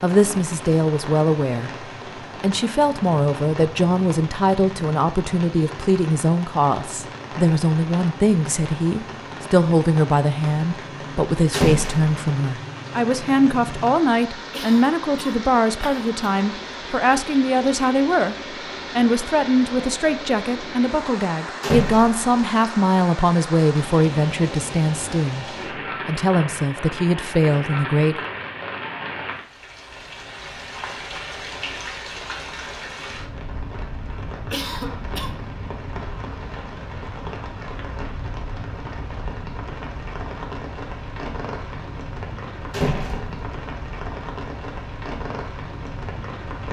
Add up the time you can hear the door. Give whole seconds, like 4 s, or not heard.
2 s.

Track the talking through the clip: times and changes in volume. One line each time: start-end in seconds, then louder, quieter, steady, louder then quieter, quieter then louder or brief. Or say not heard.
0.0-1.7 brief
2.4-25.4 steady
26.1-28.2 brief.